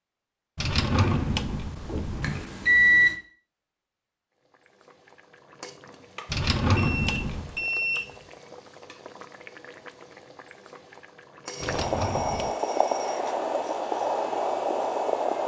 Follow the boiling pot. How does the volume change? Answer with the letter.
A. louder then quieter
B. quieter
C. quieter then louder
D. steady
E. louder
E.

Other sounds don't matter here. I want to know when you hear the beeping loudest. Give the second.
3 s.